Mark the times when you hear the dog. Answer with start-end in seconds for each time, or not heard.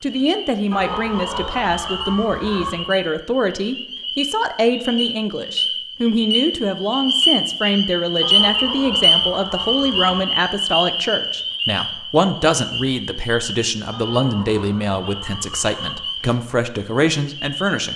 not heard.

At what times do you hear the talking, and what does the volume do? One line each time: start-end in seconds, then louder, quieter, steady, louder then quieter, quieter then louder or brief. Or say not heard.
0.0-17.9 steady.